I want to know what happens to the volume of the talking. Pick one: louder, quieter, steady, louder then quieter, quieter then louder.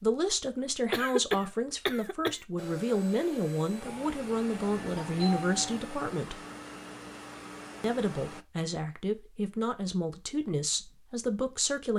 steady.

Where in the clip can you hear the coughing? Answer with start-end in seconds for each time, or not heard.
0.9-2.4.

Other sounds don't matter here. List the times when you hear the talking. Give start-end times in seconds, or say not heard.
0.0-6.4, 7.8-11.9.